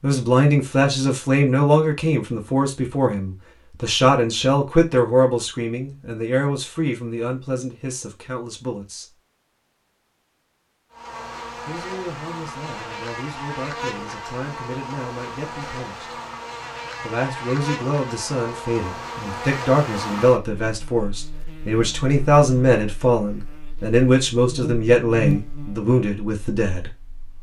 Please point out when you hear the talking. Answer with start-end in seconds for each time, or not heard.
0.0-9.2, 11.7-16.1, 17.0-26.9.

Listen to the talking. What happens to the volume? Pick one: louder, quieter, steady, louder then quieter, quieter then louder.
quieter then louder.